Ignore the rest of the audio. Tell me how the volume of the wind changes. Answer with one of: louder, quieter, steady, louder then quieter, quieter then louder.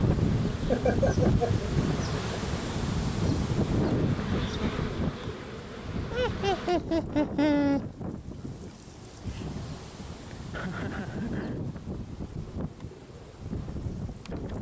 quieter.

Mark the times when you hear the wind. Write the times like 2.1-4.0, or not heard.
0.0-14.5.